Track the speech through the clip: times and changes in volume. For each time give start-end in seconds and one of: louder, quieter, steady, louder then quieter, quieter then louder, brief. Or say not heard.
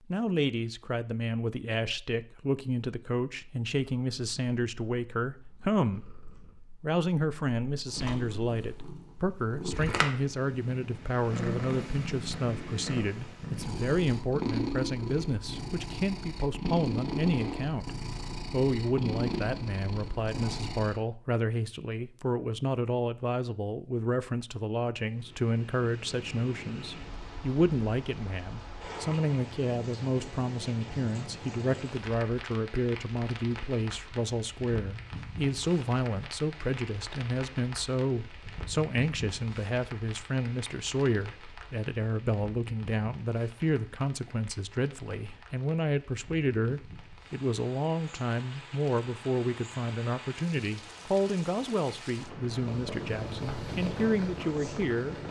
0.1-55.1 steady.